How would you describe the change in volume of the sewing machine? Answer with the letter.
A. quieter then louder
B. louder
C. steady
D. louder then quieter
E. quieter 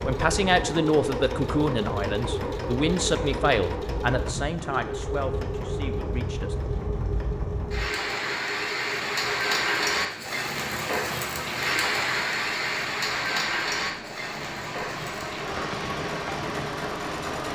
A.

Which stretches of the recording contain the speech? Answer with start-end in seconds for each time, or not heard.
0.0-6.5.